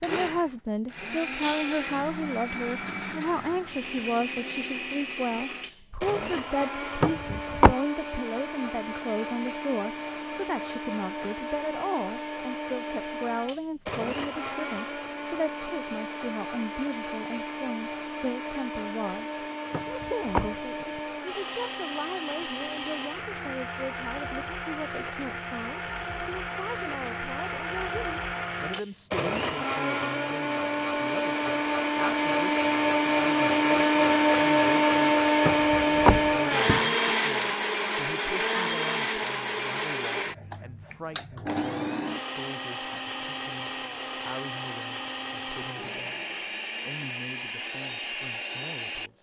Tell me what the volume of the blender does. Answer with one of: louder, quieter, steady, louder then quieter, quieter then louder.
louder then quieter.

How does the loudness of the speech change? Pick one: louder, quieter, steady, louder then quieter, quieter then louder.
quieter.